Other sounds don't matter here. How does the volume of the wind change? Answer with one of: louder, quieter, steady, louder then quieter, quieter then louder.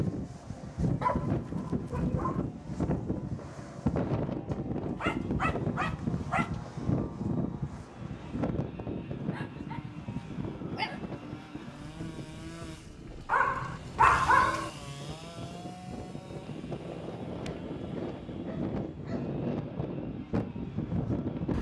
quieter then louder.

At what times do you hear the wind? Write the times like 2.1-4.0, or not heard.
0.0-21.5.